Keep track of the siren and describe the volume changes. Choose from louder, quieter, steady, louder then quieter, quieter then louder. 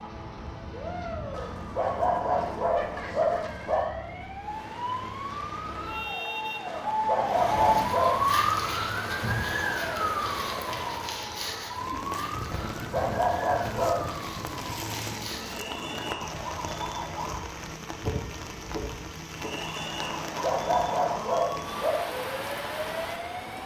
louder then quieter.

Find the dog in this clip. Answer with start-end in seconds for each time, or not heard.
1.3-3.9, 6.7-8.4, 12.5-14.1, 20.0-21.9.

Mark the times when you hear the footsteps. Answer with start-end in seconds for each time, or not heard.
not heard.